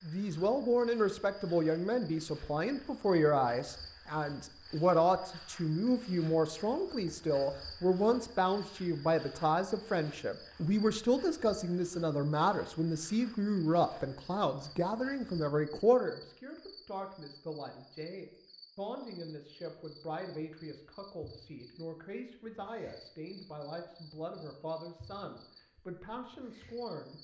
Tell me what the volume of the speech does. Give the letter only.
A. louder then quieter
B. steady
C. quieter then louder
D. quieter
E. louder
D.